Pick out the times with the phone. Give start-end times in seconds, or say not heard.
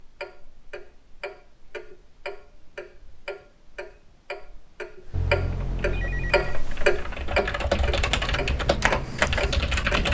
5.1-6.7.